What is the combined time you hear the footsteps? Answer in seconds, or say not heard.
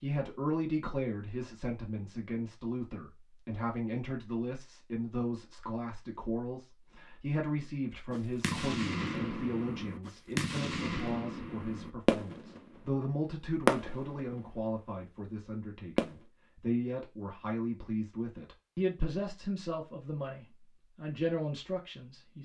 not heard.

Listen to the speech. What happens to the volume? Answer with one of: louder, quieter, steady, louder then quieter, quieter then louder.
steady.